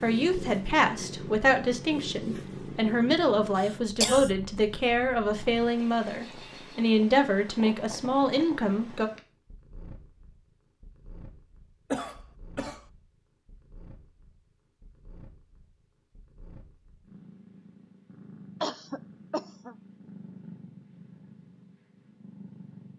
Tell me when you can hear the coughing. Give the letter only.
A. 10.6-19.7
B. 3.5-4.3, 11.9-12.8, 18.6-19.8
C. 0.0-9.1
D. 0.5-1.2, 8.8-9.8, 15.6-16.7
B.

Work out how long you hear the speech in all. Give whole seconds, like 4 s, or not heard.
9 s.